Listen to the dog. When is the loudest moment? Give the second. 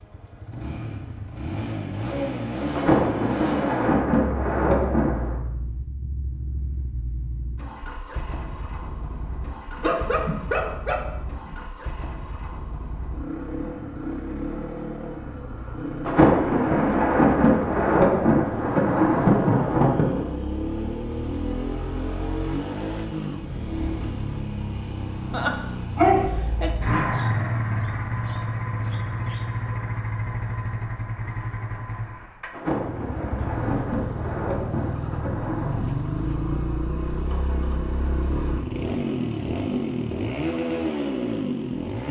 26 s.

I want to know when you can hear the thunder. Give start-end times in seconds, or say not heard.
2.7-5.3, 16.1-20.2, 32.5-35.9.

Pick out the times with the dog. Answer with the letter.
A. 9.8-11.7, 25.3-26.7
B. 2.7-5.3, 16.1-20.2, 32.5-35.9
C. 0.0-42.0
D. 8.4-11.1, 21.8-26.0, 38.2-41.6
A.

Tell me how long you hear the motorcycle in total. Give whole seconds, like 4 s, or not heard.
42 s.